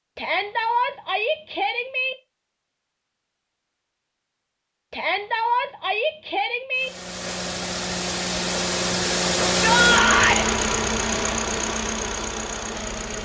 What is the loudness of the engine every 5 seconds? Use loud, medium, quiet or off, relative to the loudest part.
off, loud, loud.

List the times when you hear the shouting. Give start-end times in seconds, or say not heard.
0.1-2.1, 4.9-6.9, 9.4-10.4.